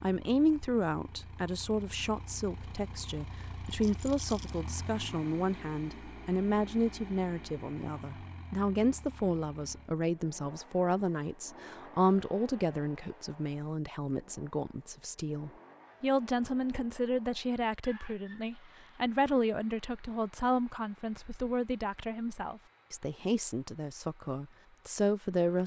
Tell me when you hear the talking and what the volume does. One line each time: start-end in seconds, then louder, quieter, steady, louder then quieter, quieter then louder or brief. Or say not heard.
0.0-25.6 steady.